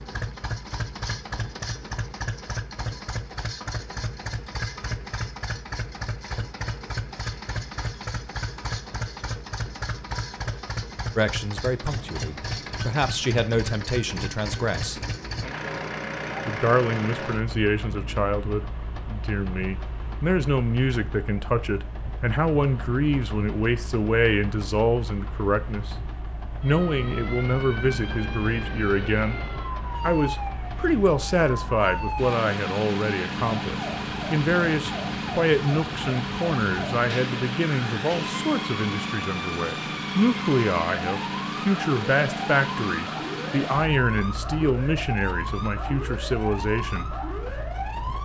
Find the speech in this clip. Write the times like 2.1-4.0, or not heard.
11.2-15.0, 16.4-25.9, 26.6-29.4, 30.0-47.1.